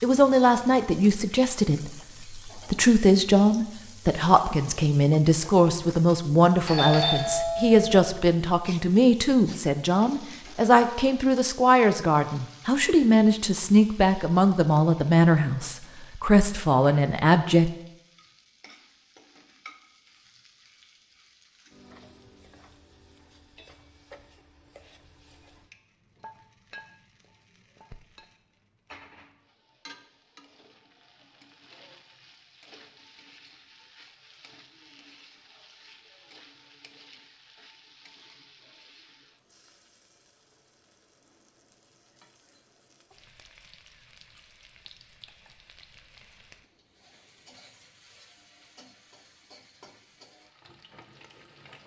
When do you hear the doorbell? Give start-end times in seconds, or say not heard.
6.7-8.1.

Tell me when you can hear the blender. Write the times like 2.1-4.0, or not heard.
not heard.